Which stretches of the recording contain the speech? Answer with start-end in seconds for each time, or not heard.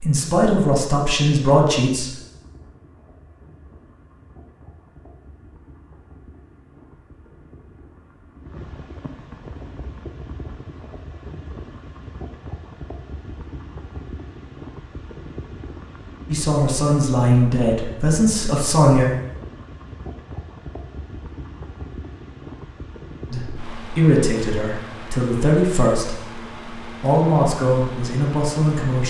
0.0-2.1, 16.3-19.1, 23.3-26.2, 27.0-29.0.